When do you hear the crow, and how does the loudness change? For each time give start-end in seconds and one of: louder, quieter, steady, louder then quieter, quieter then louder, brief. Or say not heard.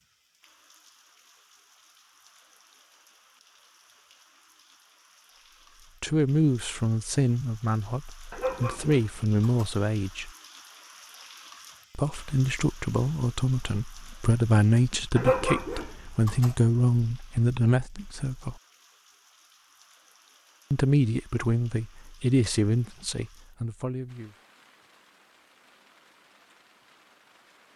not heard.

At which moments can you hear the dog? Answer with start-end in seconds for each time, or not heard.
8.3-9.7, 15.2-16.5.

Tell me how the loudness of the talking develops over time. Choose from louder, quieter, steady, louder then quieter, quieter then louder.
steady.